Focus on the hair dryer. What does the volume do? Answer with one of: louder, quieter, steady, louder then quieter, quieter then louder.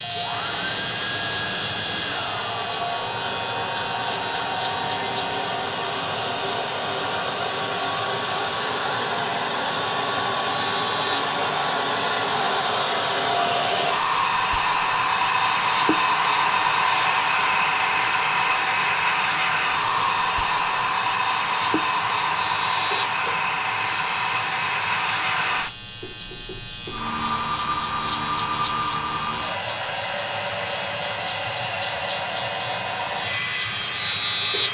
louder then quieter.